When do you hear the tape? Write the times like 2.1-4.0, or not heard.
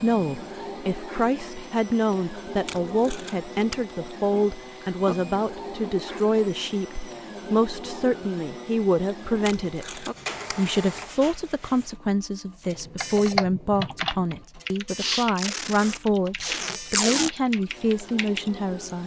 2.6-3.9, 9.4-10.6, 15.3-17.3.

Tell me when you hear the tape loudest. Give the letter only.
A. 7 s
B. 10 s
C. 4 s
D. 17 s
D.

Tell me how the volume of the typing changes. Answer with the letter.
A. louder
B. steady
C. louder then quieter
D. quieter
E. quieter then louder
D.